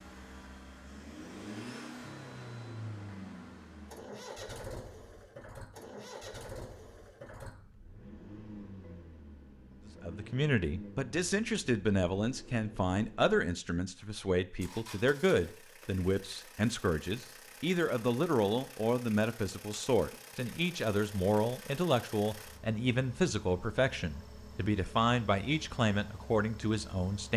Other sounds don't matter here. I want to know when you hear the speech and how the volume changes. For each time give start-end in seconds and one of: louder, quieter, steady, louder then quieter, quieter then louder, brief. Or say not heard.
10.0-27.3 steady.